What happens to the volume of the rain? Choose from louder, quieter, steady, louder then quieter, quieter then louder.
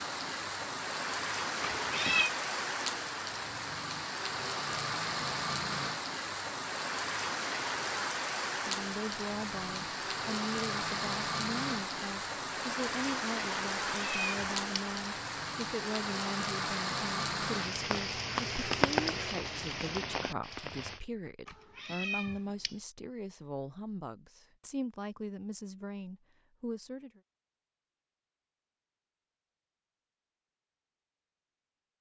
steady.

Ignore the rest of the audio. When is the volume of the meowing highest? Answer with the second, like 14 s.
2 s.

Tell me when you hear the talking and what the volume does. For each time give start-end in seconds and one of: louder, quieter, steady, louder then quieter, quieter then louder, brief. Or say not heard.
8.7-27.2 steady.